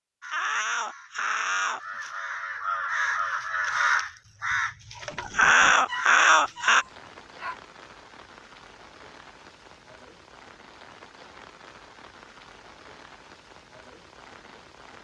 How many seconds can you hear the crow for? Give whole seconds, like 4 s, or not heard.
7 s.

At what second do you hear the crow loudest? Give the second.
6 s.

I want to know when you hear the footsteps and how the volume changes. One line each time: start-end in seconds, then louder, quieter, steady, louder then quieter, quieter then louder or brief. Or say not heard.
not heard.